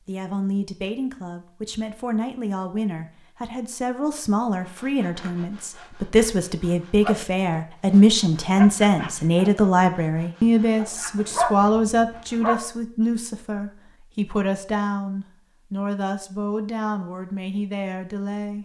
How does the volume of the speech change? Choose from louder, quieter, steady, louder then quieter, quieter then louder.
louder then quieter.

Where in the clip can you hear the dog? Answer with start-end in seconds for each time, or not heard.
10.8-12.6.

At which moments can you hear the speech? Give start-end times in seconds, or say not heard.
0.1-18.6.